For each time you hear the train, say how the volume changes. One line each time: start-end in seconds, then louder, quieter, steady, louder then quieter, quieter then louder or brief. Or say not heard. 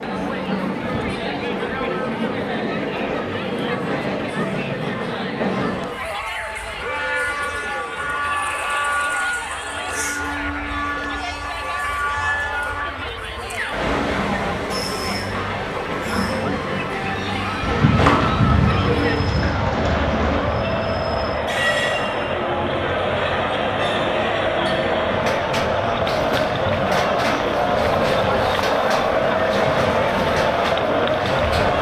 0.0-31.7 steady.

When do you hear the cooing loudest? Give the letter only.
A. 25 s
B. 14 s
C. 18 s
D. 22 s
C.